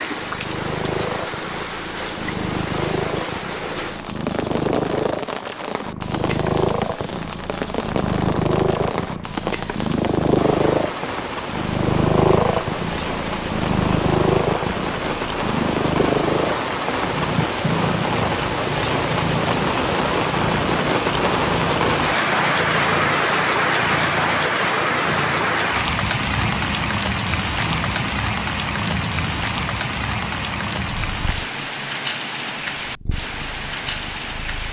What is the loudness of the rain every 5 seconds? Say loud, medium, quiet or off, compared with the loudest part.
medium, medium, medium, loud, loud, loud, medium.